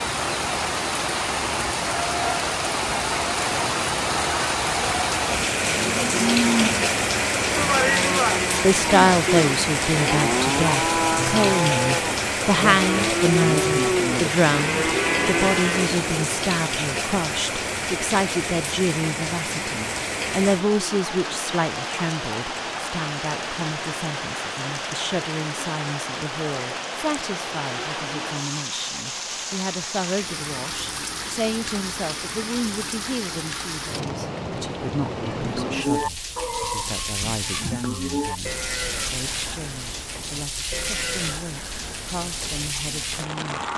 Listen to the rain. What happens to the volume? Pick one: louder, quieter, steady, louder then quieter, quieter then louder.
quieter.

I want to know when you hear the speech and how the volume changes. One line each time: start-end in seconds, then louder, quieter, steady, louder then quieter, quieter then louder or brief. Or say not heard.
8.6-43.6 quieter.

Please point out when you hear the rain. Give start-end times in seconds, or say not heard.
0.0-43.7.